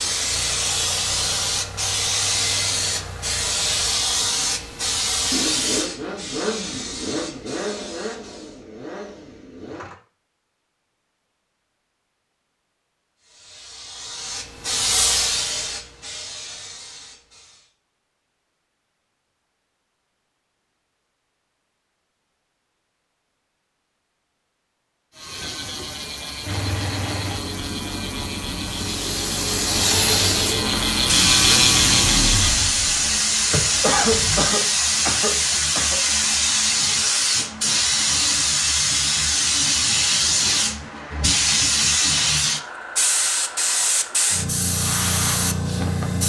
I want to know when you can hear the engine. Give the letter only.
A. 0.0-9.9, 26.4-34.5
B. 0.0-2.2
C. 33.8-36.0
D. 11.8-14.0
A.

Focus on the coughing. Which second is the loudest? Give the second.
34 s.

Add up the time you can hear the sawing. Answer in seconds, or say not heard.
not heard.